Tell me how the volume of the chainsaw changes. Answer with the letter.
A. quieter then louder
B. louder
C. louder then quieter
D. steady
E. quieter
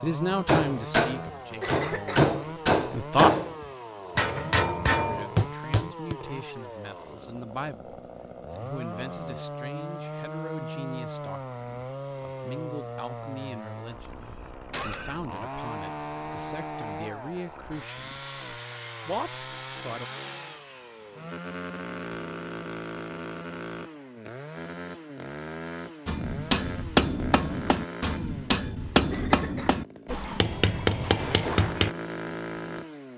D.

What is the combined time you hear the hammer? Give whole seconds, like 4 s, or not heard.
11 s.